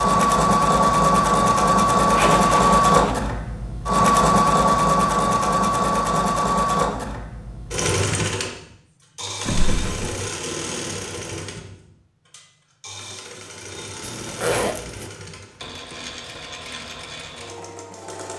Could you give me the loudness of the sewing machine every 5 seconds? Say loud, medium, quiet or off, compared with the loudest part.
loud, medium, quiet, quiet.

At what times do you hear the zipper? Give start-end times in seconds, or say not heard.
2.1-3.1, 9.4-10.2, 14.0-15.1.